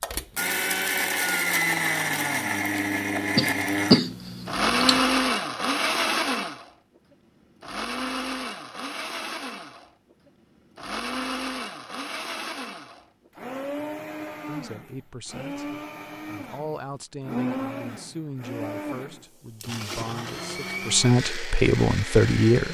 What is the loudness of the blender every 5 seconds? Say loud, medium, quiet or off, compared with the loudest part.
loud, loud, medium, medium, medium.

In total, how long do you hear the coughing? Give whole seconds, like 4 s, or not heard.
2 s.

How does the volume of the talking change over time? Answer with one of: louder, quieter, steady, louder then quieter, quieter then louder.
louder.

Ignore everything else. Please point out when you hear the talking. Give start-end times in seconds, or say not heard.
14.4-22.7.